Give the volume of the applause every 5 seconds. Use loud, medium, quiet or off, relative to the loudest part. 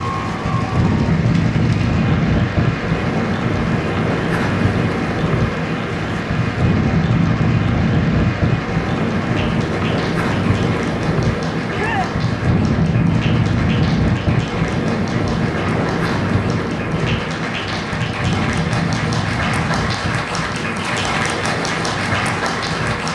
medium, medium, medium, loud, loud.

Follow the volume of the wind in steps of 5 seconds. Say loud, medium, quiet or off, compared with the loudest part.
loud, loud, loud, loud, medium.